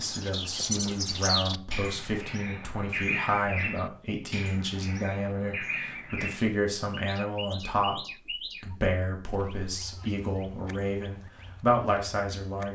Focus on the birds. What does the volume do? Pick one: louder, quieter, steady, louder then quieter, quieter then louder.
quieter.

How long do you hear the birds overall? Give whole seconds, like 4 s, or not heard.
13 s.